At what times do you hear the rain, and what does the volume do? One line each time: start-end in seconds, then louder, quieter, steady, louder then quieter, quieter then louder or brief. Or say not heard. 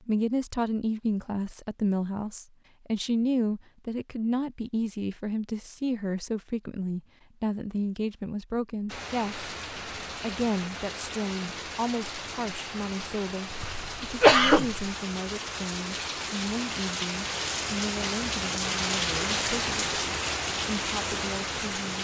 8.8-21.9 louder.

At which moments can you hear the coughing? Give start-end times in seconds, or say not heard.
13.5-14.8.